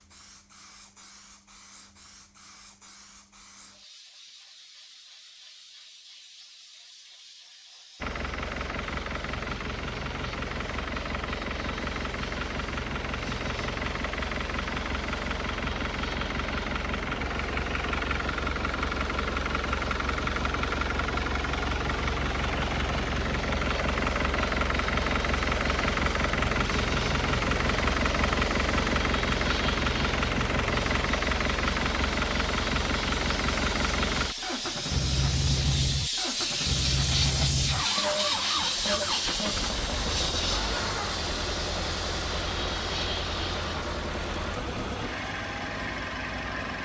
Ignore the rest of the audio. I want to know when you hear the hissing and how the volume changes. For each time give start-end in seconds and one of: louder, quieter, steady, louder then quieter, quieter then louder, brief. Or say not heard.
0.0-46.8 louder.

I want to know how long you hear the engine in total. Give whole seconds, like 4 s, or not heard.
39 s.